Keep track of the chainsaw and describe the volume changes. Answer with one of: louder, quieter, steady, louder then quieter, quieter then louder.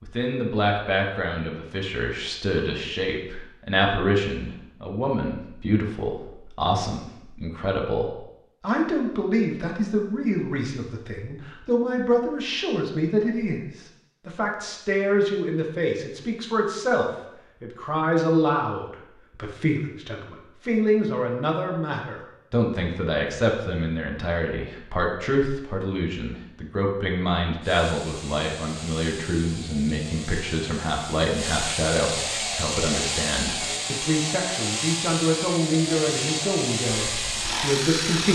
louder.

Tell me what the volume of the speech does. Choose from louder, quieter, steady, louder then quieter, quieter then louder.
steady.